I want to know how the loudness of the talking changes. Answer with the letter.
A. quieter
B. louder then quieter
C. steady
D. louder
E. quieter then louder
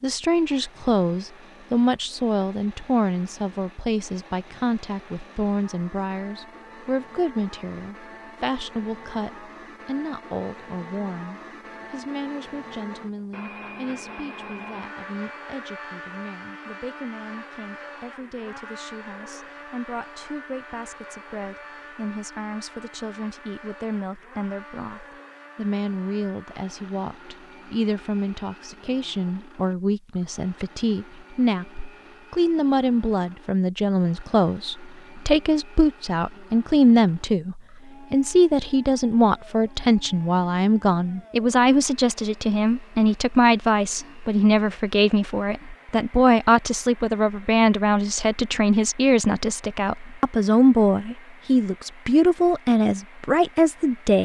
E.